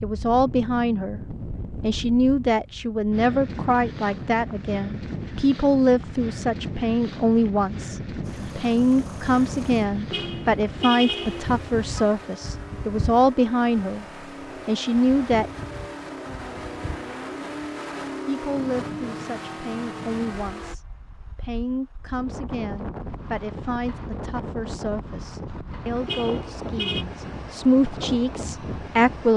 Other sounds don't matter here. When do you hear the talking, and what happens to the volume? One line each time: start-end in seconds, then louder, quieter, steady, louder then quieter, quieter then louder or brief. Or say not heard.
0.0-1.2 brief
1.8-14.1 steady
14.7-15.5 brief
18.2-29.3 louder.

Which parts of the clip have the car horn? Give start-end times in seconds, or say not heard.
10.1-12.1, 26.1-27.1.